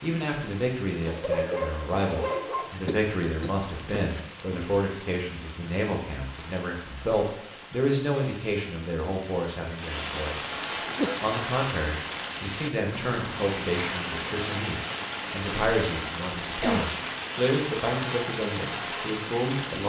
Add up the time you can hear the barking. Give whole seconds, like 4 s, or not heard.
2 s.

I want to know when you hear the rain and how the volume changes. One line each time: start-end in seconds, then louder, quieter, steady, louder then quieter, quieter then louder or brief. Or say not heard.
0.0-19.8 louder.